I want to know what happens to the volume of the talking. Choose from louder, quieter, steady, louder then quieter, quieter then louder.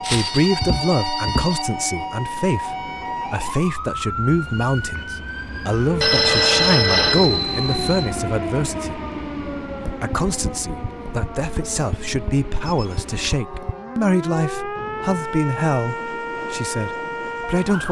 steady.